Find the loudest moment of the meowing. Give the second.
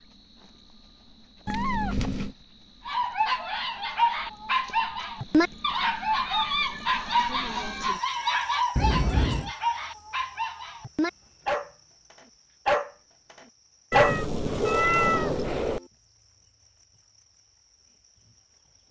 15 s.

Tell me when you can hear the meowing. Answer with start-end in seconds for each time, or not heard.
1.4-2.4, 8.8-9.5, 13.9-15.8.